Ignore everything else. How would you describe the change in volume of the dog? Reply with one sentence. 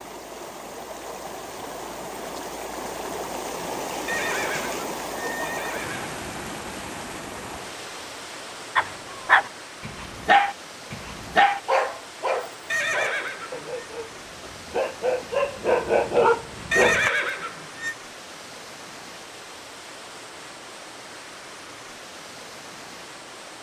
The loudness of the dog goes down, then up.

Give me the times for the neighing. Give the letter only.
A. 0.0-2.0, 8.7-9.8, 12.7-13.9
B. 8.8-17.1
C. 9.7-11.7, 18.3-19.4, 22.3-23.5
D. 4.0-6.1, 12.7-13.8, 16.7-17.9
D.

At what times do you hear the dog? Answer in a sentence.
The dog can be heard from 8.8 to 17.1 s.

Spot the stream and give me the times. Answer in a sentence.
You can hear the stream from 0.0 to 23.5 s.